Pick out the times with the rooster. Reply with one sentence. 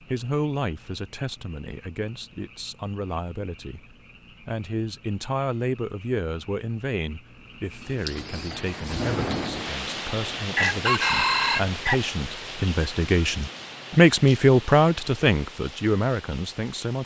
The rooster can be heard from 10.3 to 12.1 s.